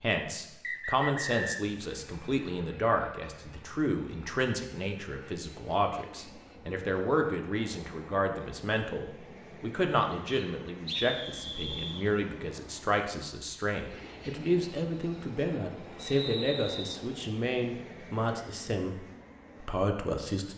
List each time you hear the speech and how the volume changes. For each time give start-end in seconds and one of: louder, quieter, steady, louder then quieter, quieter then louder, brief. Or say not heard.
0.0-20.5 steady.